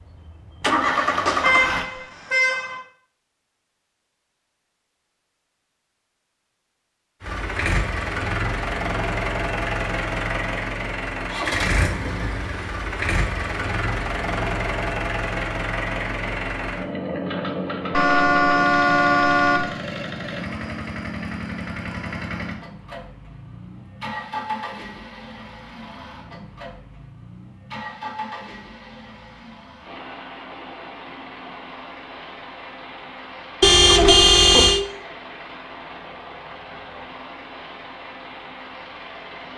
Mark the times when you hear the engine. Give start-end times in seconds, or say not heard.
0.0-1.9, 7.2-39.5.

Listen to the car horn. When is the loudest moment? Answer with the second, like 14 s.
34 s.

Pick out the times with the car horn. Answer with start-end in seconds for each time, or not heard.
1.1-2.8, 17.9-19.7, 33.6-34.8.